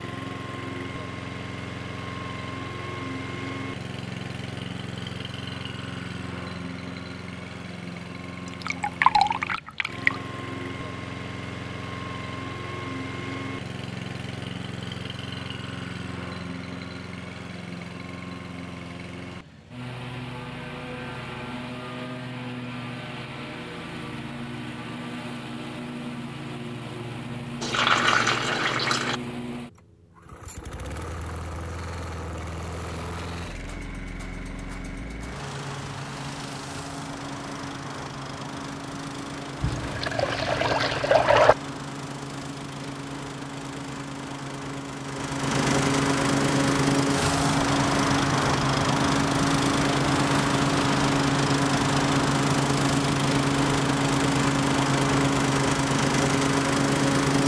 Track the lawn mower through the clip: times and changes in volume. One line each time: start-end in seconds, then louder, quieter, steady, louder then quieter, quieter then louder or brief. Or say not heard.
0.0-57.4 louder.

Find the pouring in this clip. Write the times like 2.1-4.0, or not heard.
8.4-10.2, 27.6-29.2, 39.6-41.5.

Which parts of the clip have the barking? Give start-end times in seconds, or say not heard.
not heard.